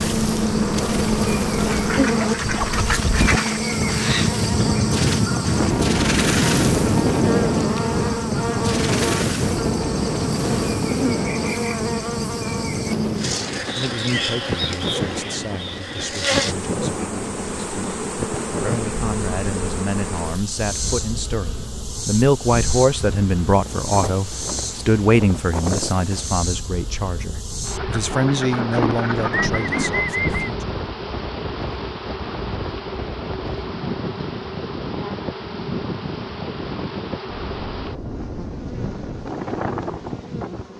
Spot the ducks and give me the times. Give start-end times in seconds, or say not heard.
1.6-3.6, 27.8-30.6.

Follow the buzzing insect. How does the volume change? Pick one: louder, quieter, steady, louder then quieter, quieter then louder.
quieter.